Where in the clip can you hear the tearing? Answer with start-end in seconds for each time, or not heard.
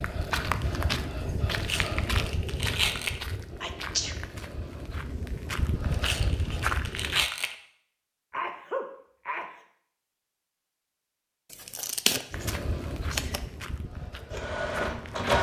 1.6-3.2, 5.9-7.5, 11.5-13.4.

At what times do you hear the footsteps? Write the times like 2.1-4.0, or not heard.
0.0-7.2, 12.3-15.3.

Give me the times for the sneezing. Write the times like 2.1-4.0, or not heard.
3.6-4.2, 8.3-9.6.